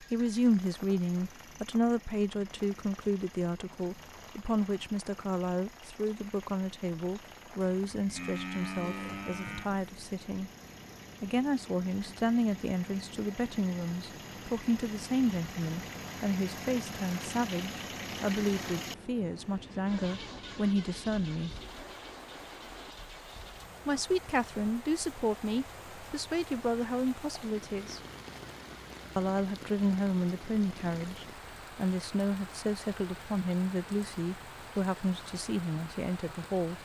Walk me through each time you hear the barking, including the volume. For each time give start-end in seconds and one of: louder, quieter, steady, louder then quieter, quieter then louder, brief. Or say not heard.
not heard.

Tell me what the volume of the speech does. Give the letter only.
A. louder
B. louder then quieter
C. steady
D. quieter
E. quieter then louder
C.